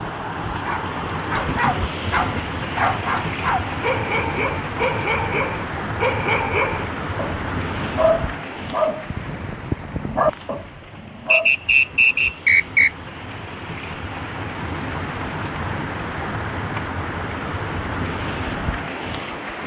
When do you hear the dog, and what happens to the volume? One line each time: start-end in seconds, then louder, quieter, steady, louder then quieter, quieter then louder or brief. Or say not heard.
0.4-11.5 steady.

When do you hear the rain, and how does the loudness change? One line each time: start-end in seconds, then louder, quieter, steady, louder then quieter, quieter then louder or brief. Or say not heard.
0.0-19.6 quieter then louder.